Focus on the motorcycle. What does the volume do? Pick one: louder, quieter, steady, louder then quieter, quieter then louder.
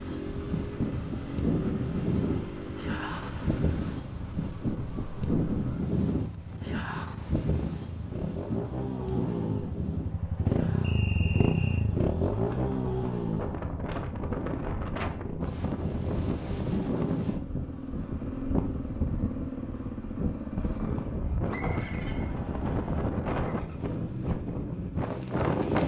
louder then quieter.